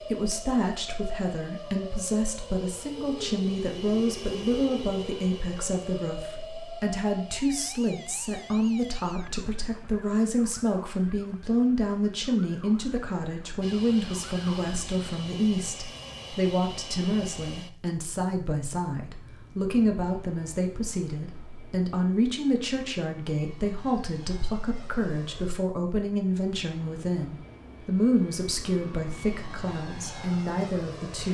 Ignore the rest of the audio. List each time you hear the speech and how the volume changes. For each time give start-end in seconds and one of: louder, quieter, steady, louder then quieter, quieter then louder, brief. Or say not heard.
0.1-31.2 steady.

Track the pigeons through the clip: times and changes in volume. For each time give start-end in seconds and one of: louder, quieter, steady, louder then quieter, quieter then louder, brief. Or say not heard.
not heard.